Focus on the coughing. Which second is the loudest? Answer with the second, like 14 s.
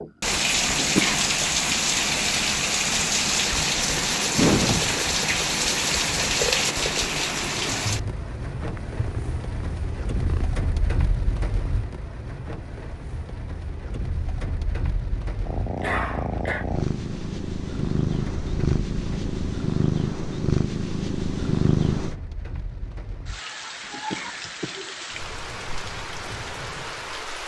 1 s.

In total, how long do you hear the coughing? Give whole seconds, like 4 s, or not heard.
2 s.